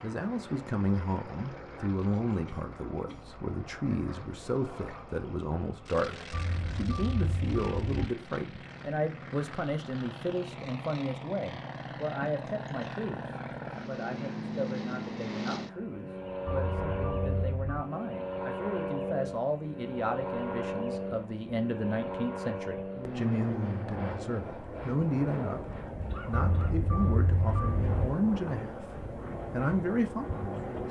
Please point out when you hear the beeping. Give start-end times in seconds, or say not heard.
6.3-7.9, 16.4-17.9, 26.3-28.1.